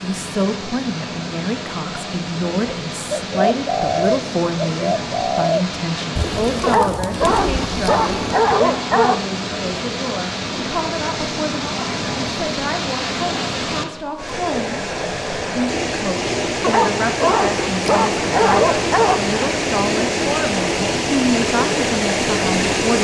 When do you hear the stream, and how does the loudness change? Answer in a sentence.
You can hear the stream from 0.0 to 22.9 s, getting louder.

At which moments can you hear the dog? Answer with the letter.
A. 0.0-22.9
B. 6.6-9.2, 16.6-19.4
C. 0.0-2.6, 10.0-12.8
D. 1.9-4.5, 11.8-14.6
B.